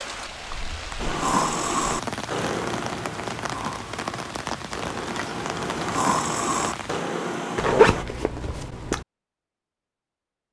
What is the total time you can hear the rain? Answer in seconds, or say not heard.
7 s.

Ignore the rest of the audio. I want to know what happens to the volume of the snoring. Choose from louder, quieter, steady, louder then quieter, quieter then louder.
quieter then louder.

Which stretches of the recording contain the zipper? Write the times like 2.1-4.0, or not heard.
7.5-9.1.